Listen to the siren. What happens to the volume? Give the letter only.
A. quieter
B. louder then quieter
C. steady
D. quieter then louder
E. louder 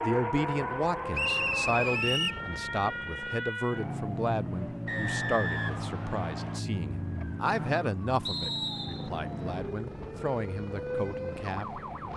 C.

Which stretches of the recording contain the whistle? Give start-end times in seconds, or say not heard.
1.1-2.4, 4.8-6.6, 8.2-9.1.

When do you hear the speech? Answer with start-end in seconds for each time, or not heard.
0.0-11.8.